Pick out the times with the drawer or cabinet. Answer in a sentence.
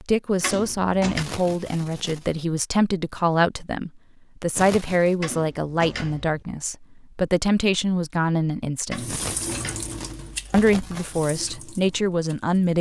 You can hear the drawer or cabinet from 0.4 to 1.2 s, from 5.2 to 6.5 s and from 8.9 to 9.9 s.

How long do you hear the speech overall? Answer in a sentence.
You can hear the speech for 11 seconds altogether.